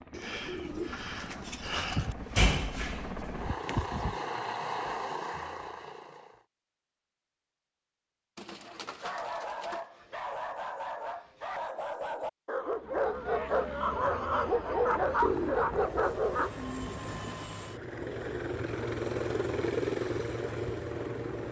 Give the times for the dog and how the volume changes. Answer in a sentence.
You can hear the dog from 8.7 to 16.5 s, getting louder.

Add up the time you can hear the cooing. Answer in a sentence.
You can hear the cooing for 6 seconds altogether.